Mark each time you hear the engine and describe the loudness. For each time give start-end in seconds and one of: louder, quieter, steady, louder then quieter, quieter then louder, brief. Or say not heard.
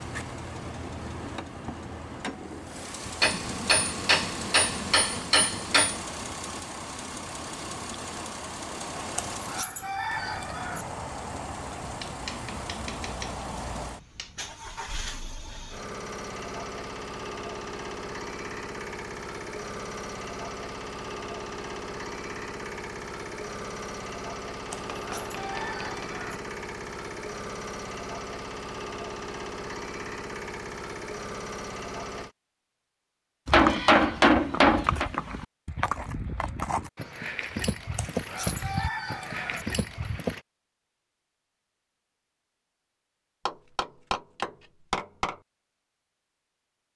0.0-32.4 steady.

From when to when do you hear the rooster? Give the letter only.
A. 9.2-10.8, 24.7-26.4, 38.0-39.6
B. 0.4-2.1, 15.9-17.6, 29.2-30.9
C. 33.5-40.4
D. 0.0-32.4
A.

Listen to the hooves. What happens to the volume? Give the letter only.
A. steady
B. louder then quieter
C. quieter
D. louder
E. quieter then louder
A.